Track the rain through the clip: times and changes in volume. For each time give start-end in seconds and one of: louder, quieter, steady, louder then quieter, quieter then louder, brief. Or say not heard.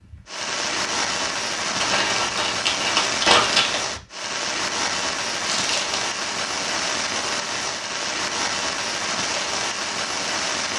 0.1-10.7 steady.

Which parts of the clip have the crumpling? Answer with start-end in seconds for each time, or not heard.
1.8-3.8, 5.5-6.0.